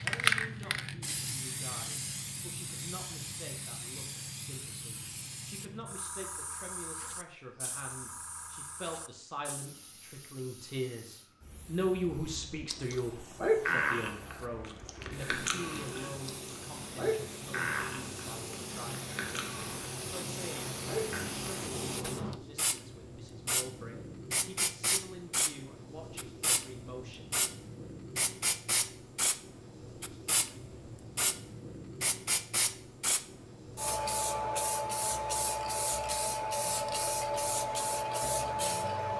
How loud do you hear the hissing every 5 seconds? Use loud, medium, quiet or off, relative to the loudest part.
loud, quiet, quiet, medium, medium, medium, loud, loud.